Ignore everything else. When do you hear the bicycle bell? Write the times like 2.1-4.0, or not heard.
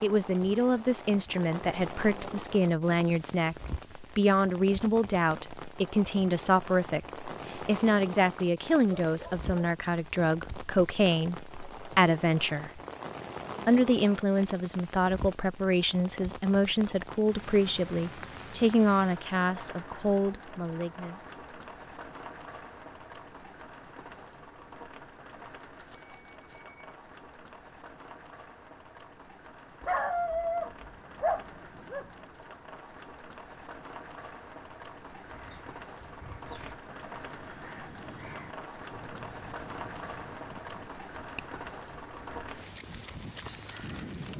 25.4-26.9.